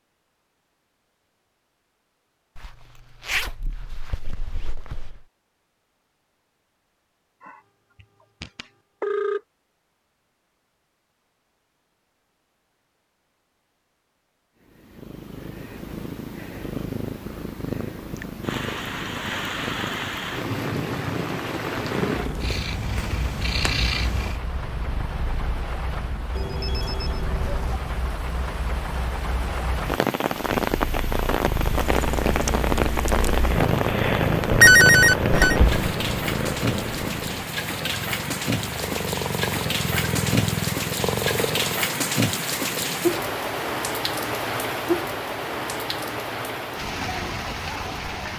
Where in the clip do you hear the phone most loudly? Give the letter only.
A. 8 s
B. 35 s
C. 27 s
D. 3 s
B.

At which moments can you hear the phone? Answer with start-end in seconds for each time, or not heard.
7.4-9.4, 26.4-27.8, 34.6-35.5.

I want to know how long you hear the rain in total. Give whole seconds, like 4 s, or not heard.
30 s.